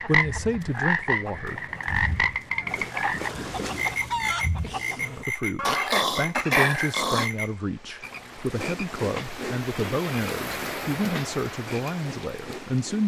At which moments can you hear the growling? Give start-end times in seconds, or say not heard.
5.7-7.3.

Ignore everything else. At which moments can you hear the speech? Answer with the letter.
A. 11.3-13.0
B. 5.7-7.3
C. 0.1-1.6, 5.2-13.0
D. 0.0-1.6
C.